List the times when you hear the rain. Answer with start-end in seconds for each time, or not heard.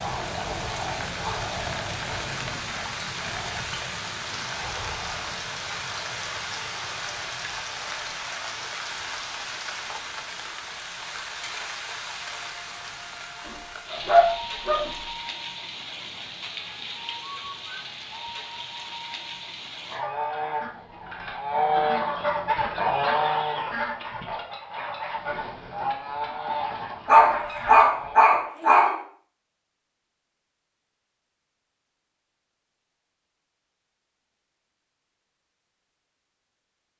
0.0-20.1.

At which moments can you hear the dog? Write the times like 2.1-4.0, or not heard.
13.4-14.9, 27.1-29.0.